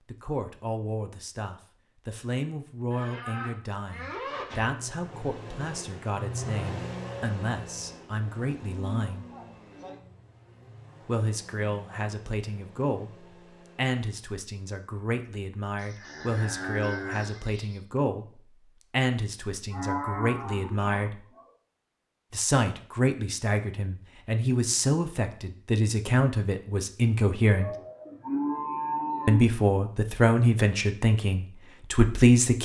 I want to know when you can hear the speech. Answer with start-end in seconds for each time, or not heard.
0.1-9.2, 11.1-21.2, 22.3-27.7, 29.2-32.6.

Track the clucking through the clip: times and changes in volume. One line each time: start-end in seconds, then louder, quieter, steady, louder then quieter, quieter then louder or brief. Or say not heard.
not heard.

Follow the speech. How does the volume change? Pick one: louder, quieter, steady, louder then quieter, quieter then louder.
louder.